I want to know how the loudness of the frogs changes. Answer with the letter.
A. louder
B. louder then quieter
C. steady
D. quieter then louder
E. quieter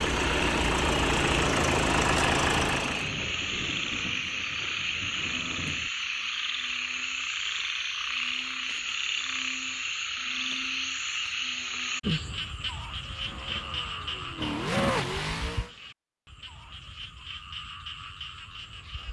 E.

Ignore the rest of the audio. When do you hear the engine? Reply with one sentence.
You can hear the engine from 0.0 to 3.1 s and from 12.9 to 15.7 s.